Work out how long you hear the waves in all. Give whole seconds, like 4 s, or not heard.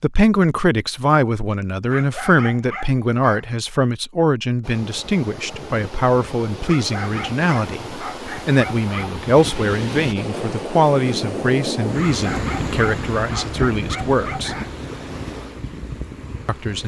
12 s.